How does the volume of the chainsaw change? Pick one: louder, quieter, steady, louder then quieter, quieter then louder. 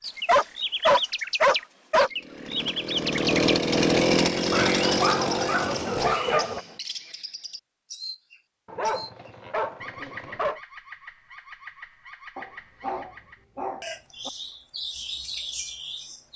louder then quieter.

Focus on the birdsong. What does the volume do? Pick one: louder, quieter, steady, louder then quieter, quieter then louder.
quieter then louder.